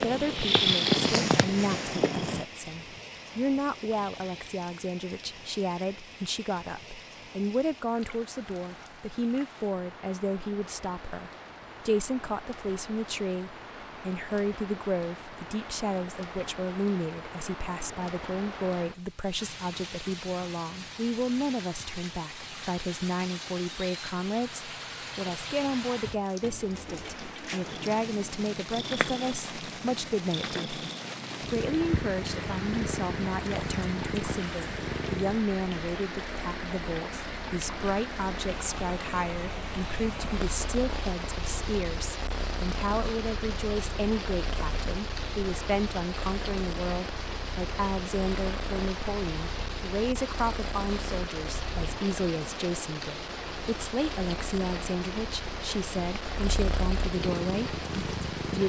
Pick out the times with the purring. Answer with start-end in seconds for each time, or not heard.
0.0-2.5, 27.6-58.6.